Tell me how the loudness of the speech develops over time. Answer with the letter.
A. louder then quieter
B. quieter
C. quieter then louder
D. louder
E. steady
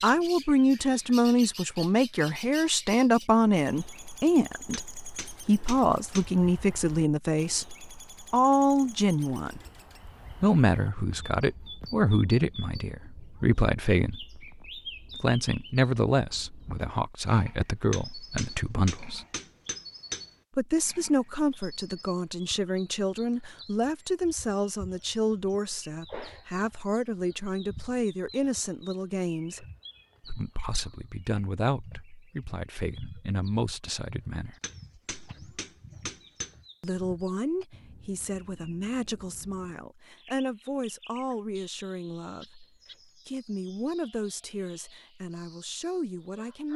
B.